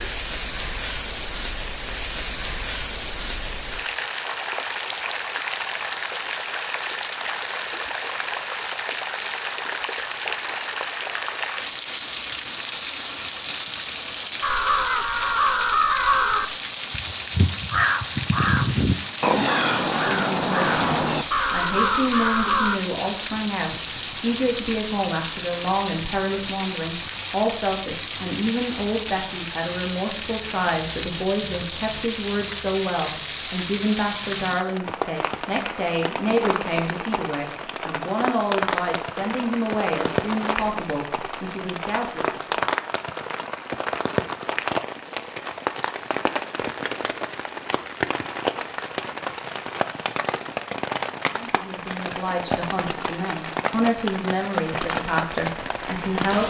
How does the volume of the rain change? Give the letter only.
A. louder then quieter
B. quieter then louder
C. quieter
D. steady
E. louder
D.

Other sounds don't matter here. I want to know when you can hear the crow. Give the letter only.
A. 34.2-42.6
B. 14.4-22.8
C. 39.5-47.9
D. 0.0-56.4
B.